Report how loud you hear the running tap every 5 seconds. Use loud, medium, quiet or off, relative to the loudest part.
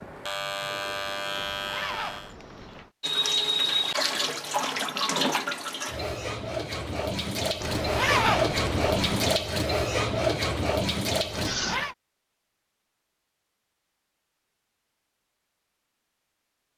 loud, loud, loud, off.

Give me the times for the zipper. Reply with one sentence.
The zipper can be heard from 1.3 to 2.9 s, from 7.6 to 9.3 s and from 11.3 to 11.9 s.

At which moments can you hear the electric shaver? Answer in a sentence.
You can hear the electric shaver from 0.0 to 2.4 s.